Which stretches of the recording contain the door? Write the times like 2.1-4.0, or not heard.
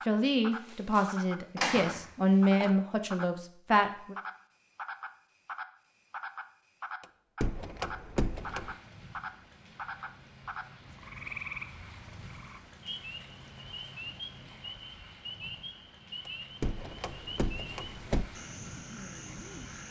0.7-2.8, 7.0-8.8, 16.2-18.2.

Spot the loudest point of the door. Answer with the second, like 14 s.
2 s.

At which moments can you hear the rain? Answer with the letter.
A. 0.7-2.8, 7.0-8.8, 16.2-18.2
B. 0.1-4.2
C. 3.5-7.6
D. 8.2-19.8
D.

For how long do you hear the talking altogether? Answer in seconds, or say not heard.
4 s.